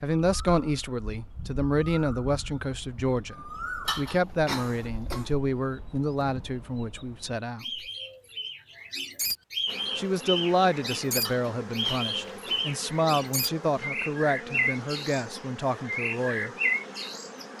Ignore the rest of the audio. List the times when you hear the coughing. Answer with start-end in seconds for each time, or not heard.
3.9-5.3, 11.2-12.7.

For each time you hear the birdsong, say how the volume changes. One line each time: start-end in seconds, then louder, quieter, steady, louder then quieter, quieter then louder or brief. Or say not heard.
0.1-17.5 quieter then louder.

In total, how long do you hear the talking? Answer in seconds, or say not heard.
14 s.